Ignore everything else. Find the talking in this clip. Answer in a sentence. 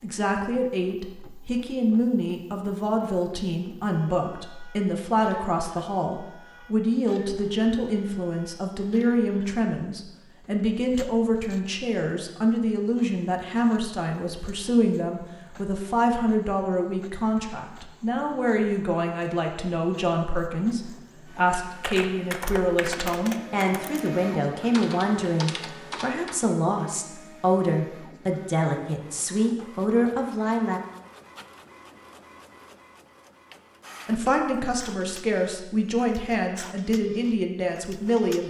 The talking can be heard from 0.0 to 30.8 s and from 34.0 to 38.4 s.